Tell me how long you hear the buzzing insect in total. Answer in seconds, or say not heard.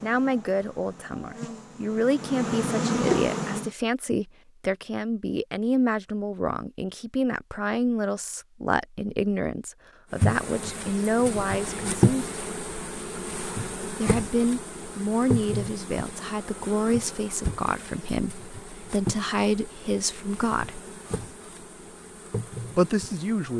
17 s.